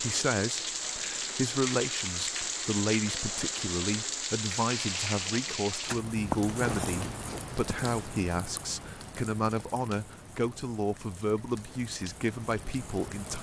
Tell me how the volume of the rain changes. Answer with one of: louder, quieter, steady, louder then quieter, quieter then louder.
quieter.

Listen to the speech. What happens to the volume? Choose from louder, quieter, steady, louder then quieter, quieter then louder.
steady.